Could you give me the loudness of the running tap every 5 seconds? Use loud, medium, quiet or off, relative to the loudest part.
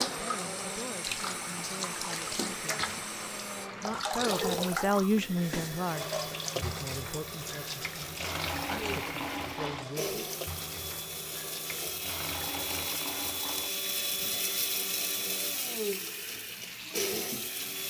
loud, loud, medium, medium.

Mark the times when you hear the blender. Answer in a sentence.
You can hear the blender from 0.0 to 17.8 s.